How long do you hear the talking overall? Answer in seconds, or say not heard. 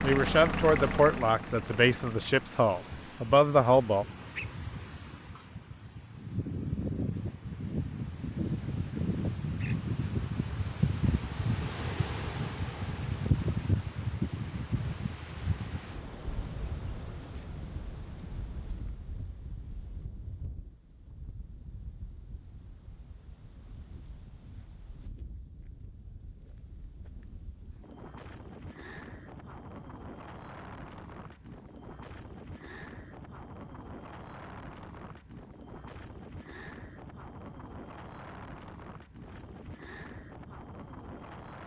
4 s.